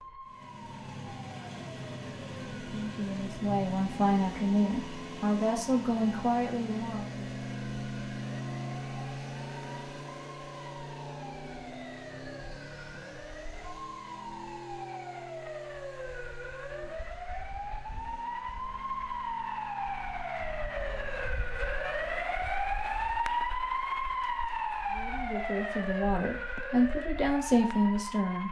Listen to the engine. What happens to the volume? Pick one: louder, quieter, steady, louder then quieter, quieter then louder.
quieter.